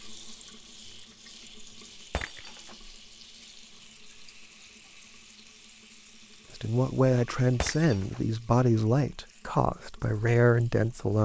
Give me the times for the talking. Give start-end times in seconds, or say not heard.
6.5-11.2.